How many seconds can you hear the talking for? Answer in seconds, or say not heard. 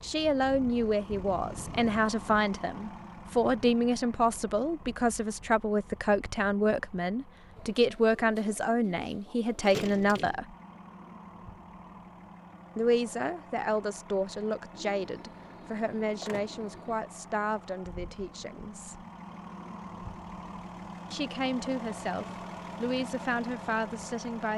20 s.